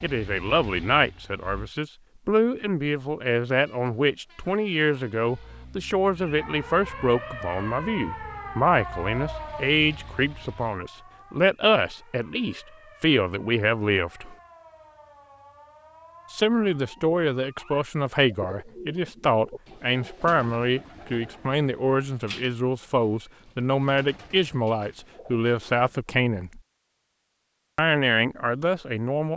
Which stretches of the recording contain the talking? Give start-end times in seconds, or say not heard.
0.0-14.3, 16.3-26.6, 27.8-29.3.